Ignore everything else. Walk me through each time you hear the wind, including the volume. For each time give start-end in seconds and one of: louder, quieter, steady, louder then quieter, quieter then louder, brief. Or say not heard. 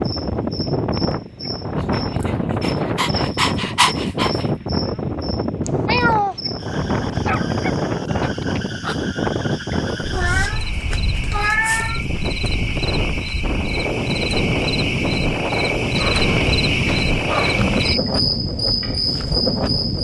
0.0-19.9 steady.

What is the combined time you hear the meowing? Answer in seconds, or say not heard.
3 s.